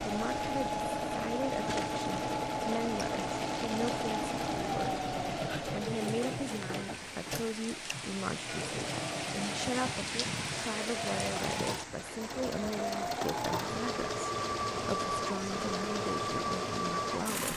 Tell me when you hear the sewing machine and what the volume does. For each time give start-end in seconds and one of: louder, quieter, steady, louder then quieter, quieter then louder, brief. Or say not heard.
0.0-17.5 quieter then louder.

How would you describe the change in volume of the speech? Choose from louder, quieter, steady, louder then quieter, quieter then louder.
steady.